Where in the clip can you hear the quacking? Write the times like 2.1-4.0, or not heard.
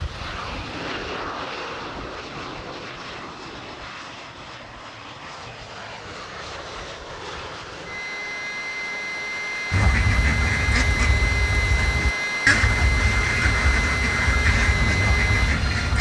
9.7-15.9.